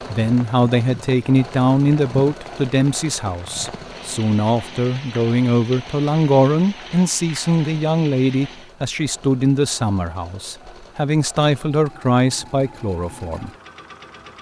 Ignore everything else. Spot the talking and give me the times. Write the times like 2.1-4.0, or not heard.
0.1-13.5.